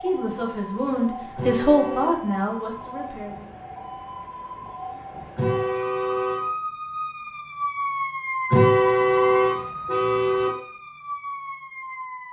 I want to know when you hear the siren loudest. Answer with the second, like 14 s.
8 s.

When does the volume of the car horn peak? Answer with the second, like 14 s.
9 s.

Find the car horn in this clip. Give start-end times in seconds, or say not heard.
1.4-2.1, 5.3-6.4, 8.5-10.5.